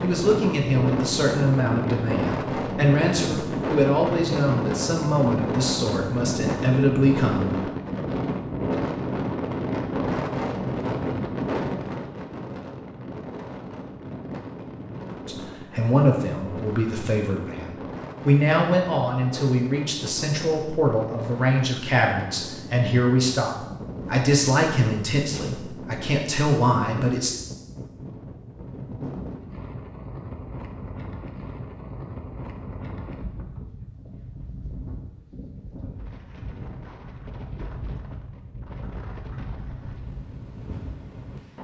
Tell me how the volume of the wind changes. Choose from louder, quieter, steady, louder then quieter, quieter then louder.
quieter.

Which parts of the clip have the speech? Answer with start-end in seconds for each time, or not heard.
0.0-7.5, 15.2-27.4.